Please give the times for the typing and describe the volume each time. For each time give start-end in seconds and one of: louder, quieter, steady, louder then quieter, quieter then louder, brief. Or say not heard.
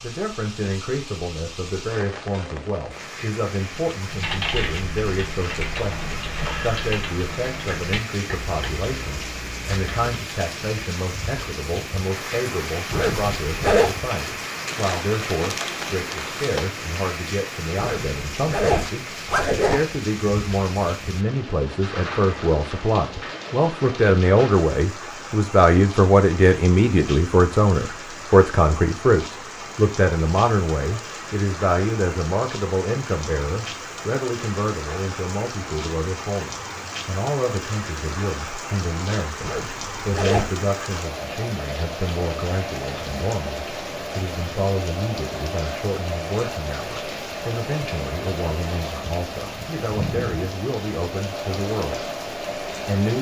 4.0-10.2 quieter.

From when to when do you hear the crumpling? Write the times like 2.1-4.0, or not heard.
14.7-16.7.